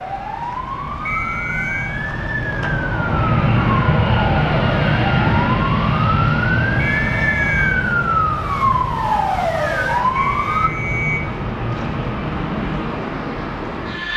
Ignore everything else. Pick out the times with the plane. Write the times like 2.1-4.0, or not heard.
0.0-14.1.